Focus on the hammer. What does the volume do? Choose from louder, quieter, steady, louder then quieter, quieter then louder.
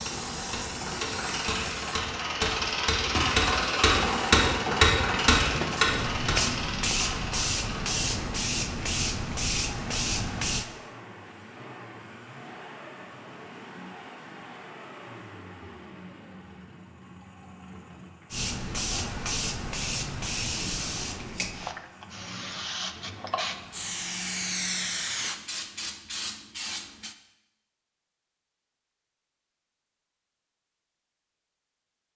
louder.